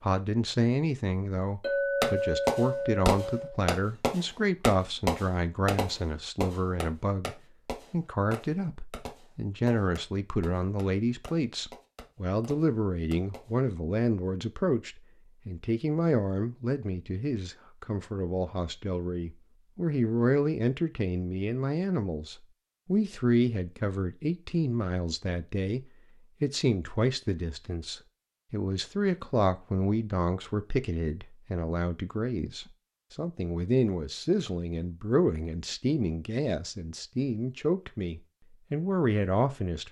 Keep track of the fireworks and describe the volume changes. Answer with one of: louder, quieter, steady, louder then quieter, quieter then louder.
quieter.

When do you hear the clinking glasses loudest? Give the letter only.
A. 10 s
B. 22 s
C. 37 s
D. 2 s
D.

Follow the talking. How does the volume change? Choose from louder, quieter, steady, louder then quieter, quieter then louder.
steady.